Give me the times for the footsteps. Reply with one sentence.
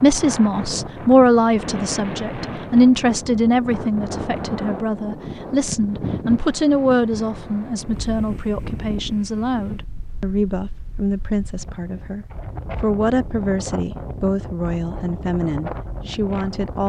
The footsteps can't be heard in this clip.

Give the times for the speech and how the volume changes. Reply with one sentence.
You can hear the speech from 0.0 to 16.8 s, getting quieter.